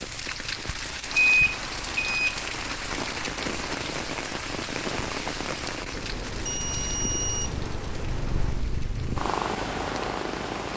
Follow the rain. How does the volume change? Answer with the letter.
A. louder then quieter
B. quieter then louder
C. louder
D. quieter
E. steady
D.